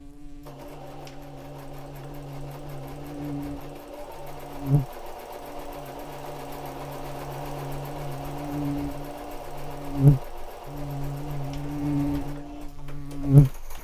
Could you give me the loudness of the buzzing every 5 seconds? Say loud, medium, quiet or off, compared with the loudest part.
quiet, quiet, loud.